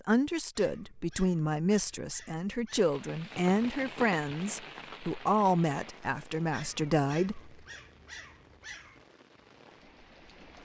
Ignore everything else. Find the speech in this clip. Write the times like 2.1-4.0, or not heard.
0.1-7.5.